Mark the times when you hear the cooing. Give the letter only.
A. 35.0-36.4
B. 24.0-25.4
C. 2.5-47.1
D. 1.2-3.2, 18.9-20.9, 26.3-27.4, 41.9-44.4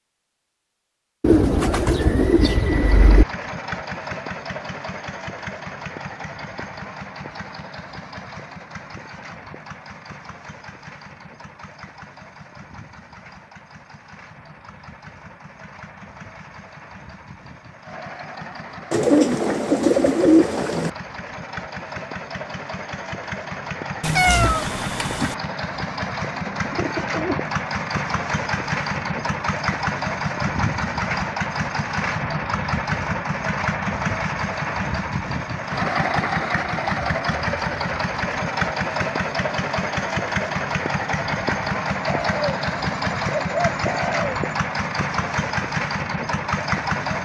D.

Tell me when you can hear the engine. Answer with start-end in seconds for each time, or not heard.
2.5-47.1.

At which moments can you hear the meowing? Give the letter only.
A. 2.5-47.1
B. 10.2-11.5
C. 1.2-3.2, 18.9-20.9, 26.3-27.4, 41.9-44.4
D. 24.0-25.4
D.